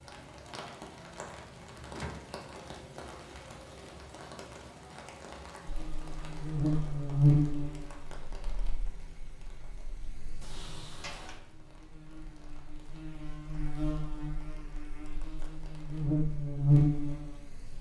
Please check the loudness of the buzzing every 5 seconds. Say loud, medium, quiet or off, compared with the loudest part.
off, loud, quiet, loud.